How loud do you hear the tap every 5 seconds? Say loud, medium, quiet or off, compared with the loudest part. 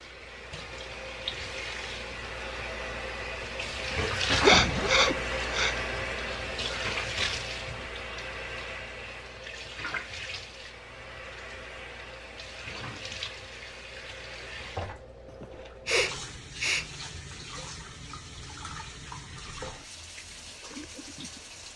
loud, loud, medium, medium, medium.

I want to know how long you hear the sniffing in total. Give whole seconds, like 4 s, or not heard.
3 s.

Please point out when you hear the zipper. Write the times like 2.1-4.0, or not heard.
4.3-5.2.